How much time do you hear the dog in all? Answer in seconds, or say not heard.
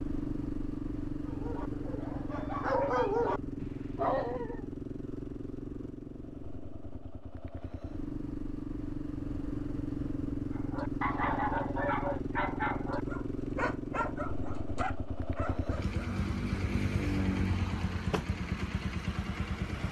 9 s.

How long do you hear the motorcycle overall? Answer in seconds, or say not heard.
20 s.